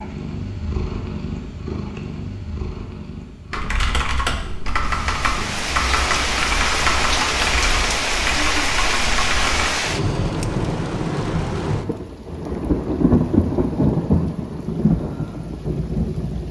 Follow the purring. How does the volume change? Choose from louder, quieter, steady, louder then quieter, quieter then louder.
quieter.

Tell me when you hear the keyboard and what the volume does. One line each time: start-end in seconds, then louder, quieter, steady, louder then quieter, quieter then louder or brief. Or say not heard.
3.5-9.7 steady.